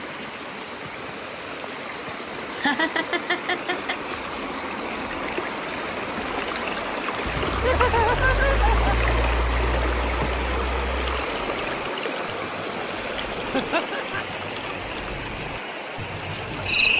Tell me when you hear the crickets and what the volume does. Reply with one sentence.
You can hear the crickets from 3.9 to 16.9 s, getting quieter then louder.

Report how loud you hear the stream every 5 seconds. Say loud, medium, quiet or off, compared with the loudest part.
medium, loud, loud, medium.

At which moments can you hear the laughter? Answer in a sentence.
The laughter can be heard from 2.5 to 4.0 s, from 7.5 to 8.9 s and from 13.5 to 14.2 s.